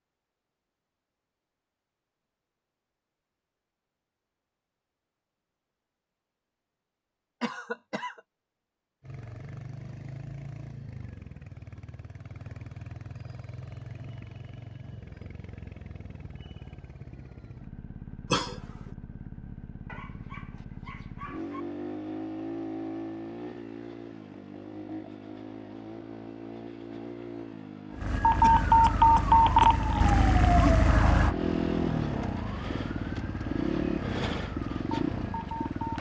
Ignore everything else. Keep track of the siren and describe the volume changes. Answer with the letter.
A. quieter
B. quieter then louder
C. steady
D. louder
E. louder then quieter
A.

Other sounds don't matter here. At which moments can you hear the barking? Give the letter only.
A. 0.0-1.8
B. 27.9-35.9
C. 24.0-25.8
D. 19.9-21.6
D.